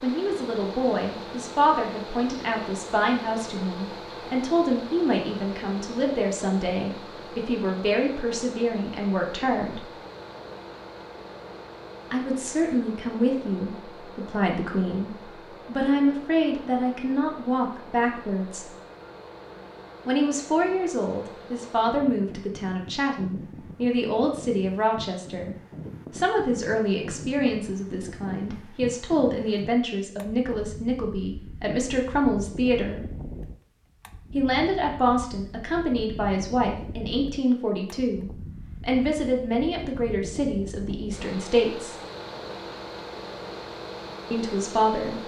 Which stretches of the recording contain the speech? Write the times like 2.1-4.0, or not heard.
0.0-9.8, 12.1-18.7, 20.1-33.0, 34.3-42.0, 44.3-45.2.